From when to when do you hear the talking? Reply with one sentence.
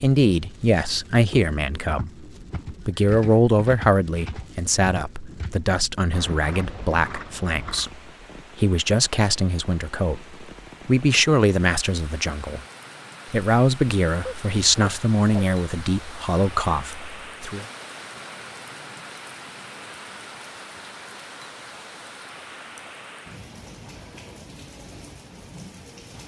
You can hear the talking from 0.0 to 12.6 s and from 13.3 to 17.6 s.